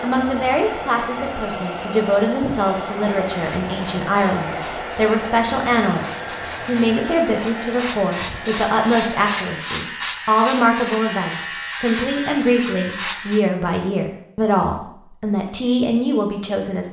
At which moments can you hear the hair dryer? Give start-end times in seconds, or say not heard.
0.0-9.7.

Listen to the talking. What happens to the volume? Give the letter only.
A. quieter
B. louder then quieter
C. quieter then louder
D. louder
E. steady
E.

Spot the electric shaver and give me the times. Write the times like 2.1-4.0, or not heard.
3.2-13.4.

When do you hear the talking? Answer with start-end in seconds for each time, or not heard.
0.0-16.8.